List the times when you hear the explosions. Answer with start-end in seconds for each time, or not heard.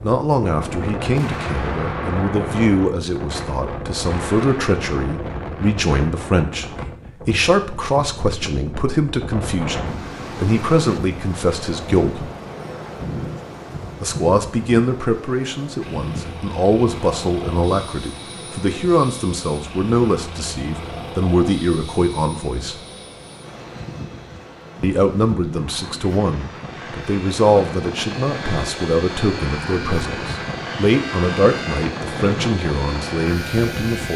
1.1-2.7.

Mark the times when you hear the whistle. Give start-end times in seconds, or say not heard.
not heard.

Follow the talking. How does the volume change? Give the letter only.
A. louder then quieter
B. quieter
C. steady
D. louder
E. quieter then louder
C.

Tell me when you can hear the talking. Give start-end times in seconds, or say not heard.
0.0-6.7, 7.2-12.3, 14.0-22.8, 24.8-34.1.